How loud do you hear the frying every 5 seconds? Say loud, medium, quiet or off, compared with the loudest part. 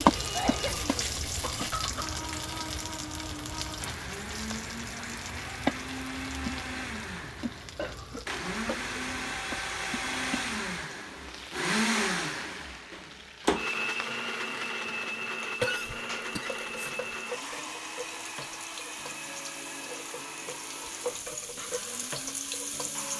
loud, medium, quiet, medium, medium.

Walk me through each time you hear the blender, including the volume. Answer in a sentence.
You can hear the blender from 0.0 to 23.1 s, getting louder then quieter.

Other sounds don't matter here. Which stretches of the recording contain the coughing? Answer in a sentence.
The coughing can be heard from 0.3 to 2.2 s, from 7.8 to 8.9 s and from 15.6 to 16.9 s.